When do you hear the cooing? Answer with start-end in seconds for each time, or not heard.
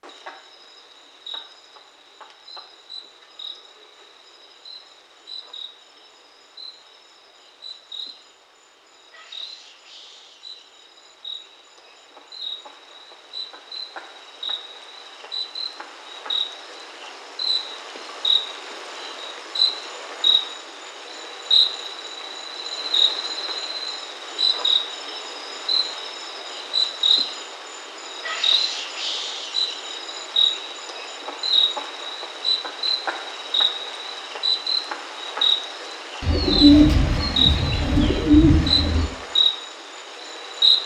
36.2-39.0.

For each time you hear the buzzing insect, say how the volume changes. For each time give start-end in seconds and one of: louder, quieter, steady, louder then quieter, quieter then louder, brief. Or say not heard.
0.0-40.8 louder.